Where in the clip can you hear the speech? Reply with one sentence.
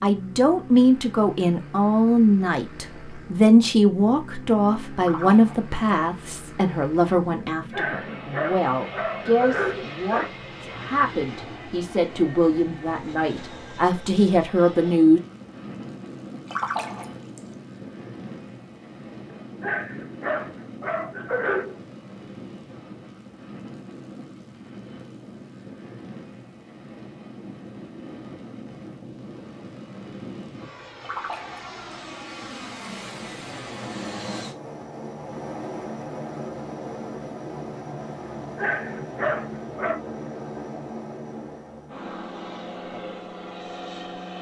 The speech can be heard from 0.0 to 15.2 s.